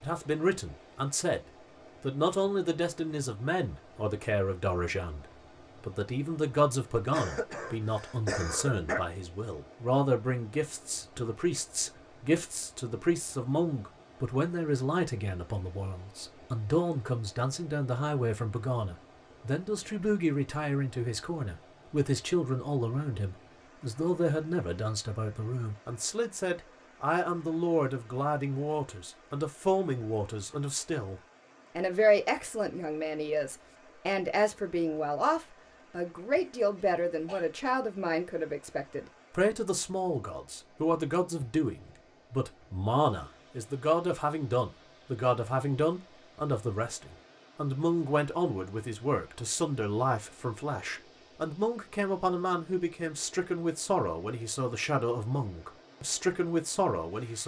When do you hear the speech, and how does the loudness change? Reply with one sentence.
The speech can be heard briefly from 0.0 to 1.4 s; and from 2.0 to 57.4 s, at a steady volume.